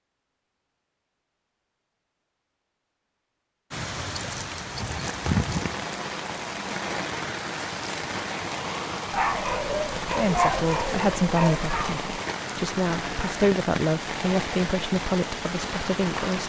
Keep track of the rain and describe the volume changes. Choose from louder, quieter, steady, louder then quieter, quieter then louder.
steady.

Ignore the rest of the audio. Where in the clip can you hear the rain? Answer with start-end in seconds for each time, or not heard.
3.7-16.4.